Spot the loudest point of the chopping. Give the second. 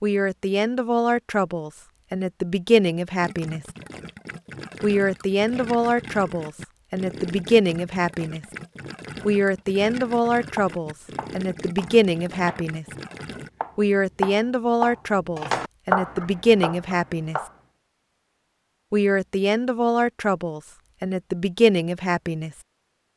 16 s.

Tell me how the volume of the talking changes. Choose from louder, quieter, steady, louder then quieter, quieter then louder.
steady.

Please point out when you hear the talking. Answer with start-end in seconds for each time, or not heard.
0.0-3.6, 4.8-8.4, 9.2-12.8, 13.8-17.4, 18.9-22.5.